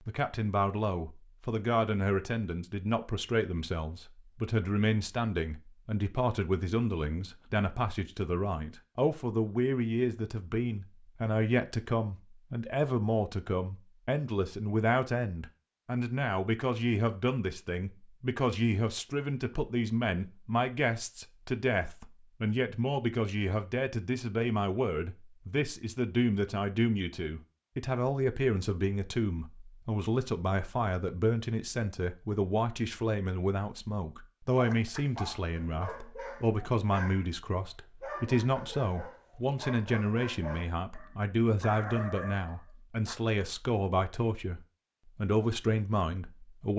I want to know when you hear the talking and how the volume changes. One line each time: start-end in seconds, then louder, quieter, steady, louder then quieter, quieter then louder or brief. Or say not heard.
0.1-46.7 steady.